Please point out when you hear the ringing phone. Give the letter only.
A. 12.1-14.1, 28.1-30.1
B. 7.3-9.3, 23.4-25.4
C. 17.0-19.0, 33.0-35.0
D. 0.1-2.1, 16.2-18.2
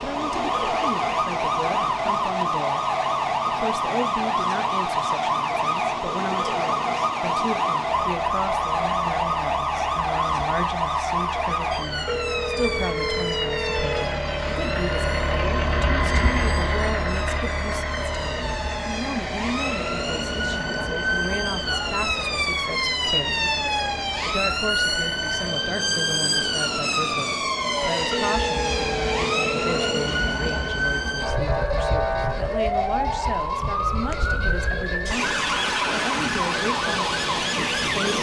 A.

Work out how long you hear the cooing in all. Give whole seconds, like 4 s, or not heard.
not heard.